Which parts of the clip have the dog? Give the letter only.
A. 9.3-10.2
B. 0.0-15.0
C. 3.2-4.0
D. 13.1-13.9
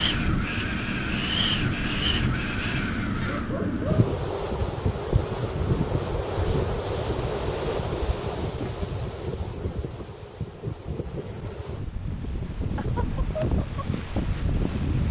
C.